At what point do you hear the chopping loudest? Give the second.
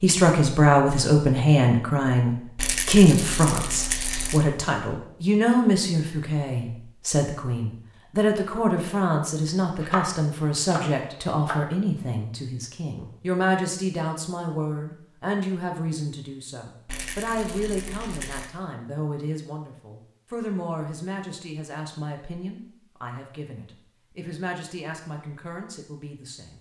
10 s.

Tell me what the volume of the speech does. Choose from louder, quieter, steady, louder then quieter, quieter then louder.
quieter.